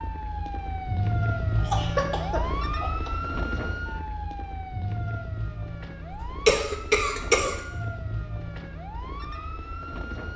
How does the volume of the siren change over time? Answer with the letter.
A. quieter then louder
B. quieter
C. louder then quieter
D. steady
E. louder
B.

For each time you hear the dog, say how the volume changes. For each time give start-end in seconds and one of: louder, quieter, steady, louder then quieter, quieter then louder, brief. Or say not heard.
not heard.